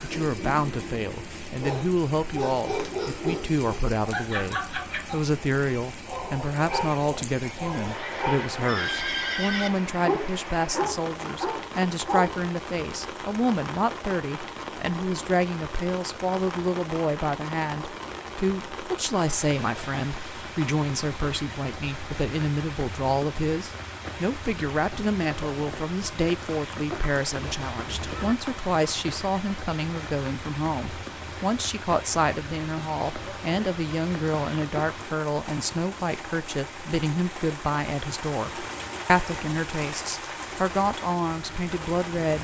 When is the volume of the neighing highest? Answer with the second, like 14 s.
9 s.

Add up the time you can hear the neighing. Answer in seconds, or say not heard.
3 s.